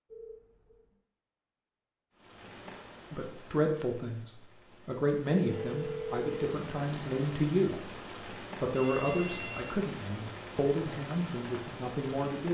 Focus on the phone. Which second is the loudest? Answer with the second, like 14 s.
6 s.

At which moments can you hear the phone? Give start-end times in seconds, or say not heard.
0.1-0.8, 5.3-6.5, 8.8-9.8.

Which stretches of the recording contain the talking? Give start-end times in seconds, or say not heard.
3.1-7.9, 8.6-12.4.